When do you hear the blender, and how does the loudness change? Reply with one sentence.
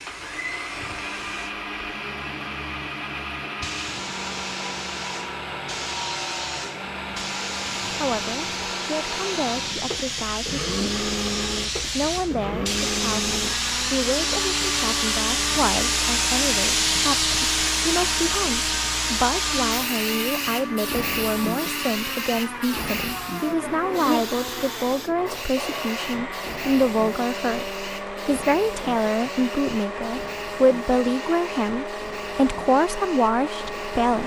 The blender can be heard from 0.0 to 34.2 s, at a steady volume.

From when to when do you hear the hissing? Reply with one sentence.
The hissing can be heard from 0.0 to 34.2 s.